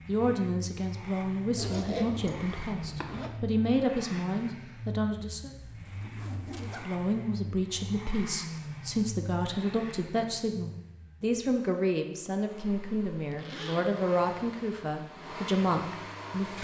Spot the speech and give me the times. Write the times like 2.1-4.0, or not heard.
0.1-5.5, 6.6-16.5.